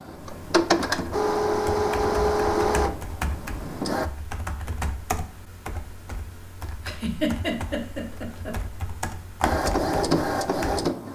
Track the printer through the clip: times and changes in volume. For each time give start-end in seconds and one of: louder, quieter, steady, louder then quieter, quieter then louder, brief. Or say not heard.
0.0-4.1 quieter
9.4-11.0 brief.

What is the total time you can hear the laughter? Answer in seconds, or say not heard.
2 s.